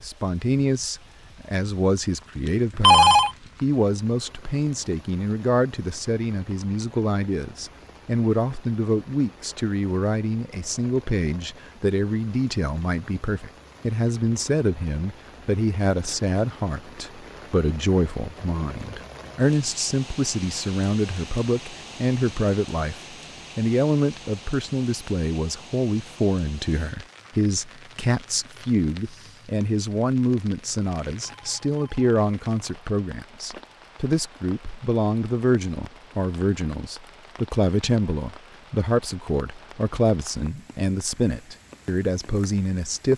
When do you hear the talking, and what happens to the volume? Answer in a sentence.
You can hear the talking from 0.0 to 43.1 s, at a steady volume.